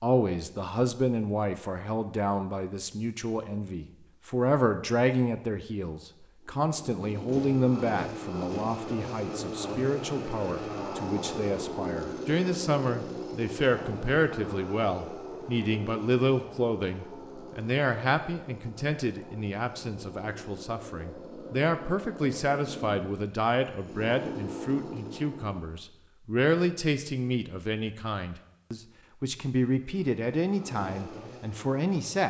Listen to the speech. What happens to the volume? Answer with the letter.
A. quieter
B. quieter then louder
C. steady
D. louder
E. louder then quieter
C.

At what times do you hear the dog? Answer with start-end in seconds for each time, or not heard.
not heard.